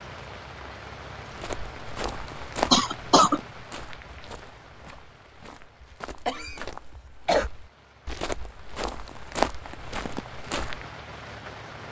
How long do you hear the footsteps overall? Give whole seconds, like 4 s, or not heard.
10 s.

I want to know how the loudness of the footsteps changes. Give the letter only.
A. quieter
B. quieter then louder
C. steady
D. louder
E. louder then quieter
B.